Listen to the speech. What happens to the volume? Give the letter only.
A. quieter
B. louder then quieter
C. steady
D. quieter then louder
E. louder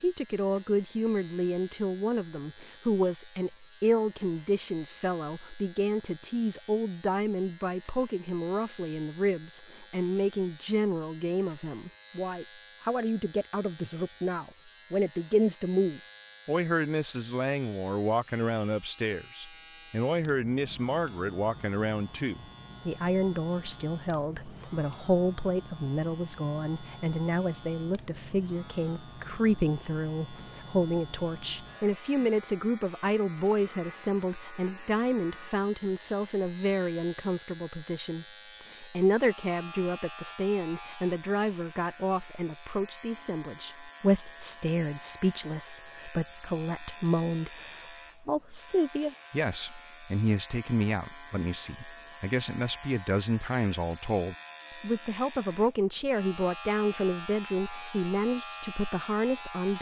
C.